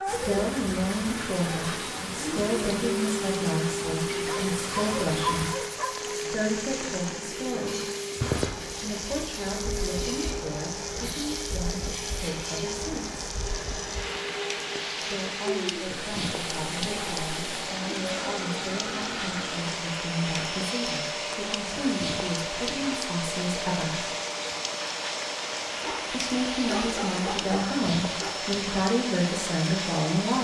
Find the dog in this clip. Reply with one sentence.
The dog can be heard from 4.2 to 6.2 s and from 25.8 to 28.4 s.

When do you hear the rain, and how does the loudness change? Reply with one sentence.
The rain can be heard from 0.1 to 30.3 s, at a steady volume.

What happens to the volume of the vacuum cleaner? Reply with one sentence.
The volume of the vacuum cleaner stays about the same.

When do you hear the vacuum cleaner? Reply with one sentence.
You can hear the vacuum cleaner from 0.0 to 30.3 s.